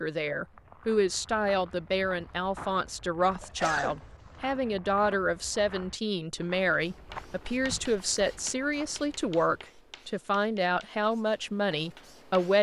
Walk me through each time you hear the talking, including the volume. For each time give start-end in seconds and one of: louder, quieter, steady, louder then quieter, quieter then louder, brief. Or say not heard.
0.0-12.5 steady.